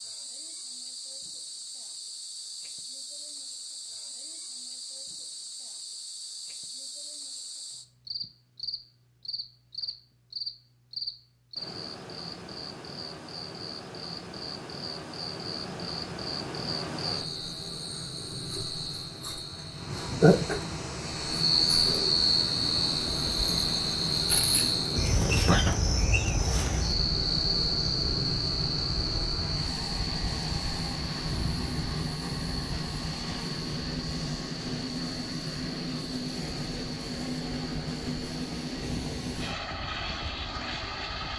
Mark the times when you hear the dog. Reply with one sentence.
The dog can't be heard in this clip.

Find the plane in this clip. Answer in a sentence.
You can hear the plane from 15.7 to 41.3 s.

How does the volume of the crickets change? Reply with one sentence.
The loudness of the crickets goes up, then down.